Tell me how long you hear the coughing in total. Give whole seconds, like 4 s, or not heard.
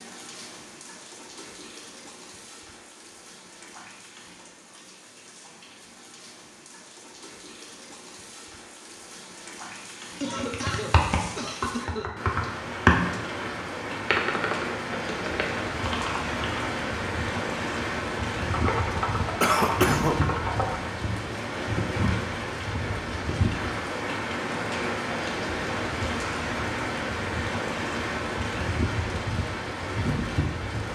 3 s.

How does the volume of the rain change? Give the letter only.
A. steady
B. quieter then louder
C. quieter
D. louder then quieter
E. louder
E.